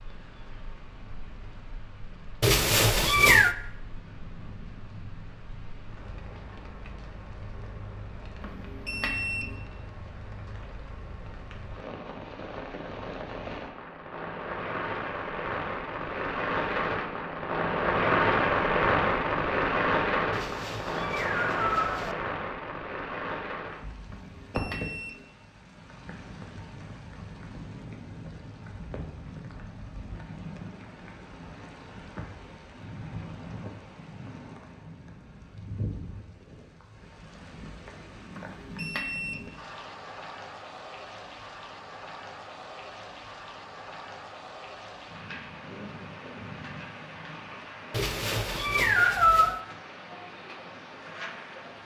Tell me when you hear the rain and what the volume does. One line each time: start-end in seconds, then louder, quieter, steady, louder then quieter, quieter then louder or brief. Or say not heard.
0.0-51.8 louder then quieter.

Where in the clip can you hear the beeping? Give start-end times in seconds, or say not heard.
8.4-9.6, 24.1-25.2, 38.3-39.5.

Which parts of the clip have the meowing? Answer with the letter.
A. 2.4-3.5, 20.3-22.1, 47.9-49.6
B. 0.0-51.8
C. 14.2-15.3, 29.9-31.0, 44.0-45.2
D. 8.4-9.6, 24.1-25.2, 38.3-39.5
A.